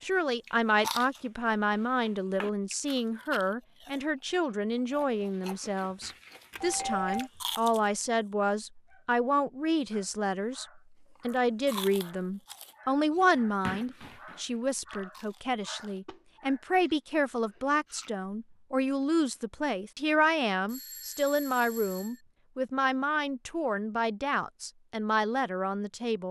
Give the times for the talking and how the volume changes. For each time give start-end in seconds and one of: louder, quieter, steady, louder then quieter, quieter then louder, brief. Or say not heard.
0.0-26.2 steady.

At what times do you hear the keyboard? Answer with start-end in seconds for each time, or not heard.
not heard.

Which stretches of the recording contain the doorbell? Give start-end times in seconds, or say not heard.
6.5-7.3, 20.6-22.2.